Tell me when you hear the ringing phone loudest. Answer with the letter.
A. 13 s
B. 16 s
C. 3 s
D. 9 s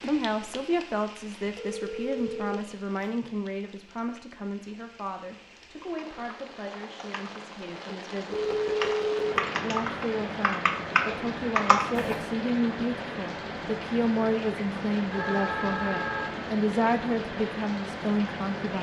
D.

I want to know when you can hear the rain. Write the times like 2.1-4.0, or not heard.
0.0-18.7.